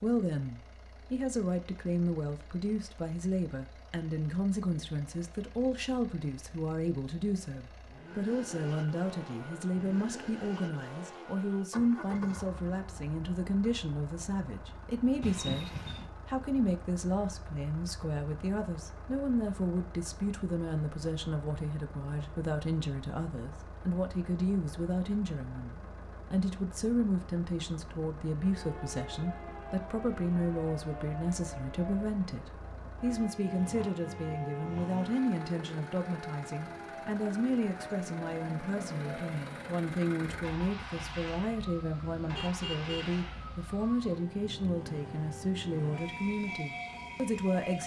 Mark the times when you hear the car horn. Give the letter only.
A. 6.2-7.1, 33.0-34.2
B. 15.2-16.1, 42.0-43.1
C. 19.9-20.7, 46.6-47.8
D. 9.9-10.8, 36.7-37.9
B.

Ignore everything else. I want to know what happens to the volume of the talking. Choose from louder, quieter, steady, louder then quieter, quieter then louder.
steady.